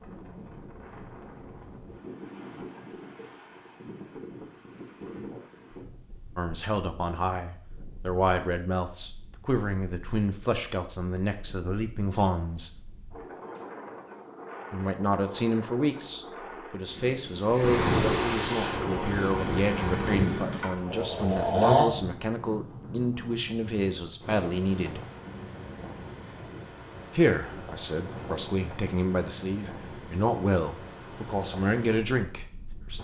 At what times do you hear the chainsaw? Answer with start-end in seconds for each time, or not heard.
18.5-21.9.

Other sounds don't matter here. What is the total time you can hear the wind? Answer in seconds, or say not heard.
33 s.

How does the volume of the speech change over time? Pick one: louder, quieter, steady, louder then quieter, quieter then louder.
steady.